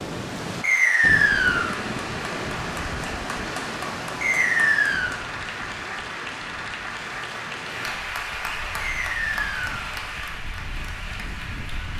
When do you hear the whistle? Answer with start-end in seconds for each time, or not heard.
0.6-1.8, 4.2-5.2, 8.8-9.8.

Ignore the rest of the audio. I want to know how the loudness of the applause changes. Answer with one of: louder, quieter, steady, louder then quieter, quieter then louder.
steady.